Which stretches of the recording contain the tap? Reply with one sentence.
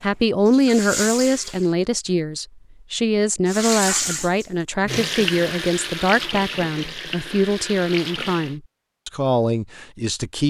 You can hear the tap from 0.0 to 1.8 s and from 3.5 to 8.6 s.